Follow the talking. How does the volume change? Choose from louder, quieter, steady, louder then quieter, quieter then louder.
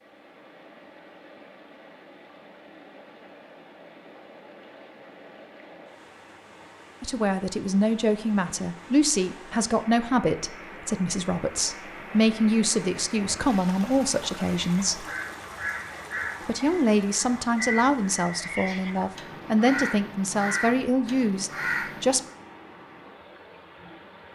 steady.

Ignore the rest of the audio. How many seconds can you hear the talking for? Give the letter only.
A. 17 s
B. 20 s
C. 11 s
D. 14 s
D.